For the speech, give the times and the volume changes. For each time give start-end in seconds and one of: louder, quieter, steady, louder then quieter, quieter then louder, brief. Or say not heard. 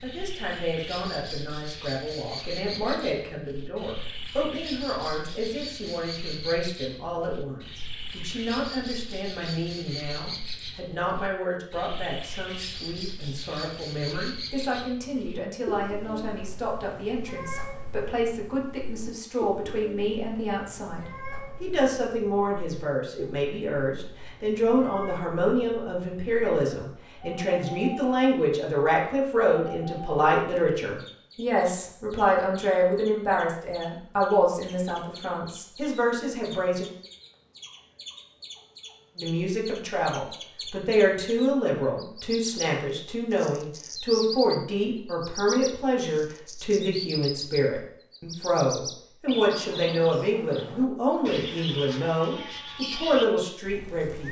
0.0-36.9 louder
39.1-54.2 steady.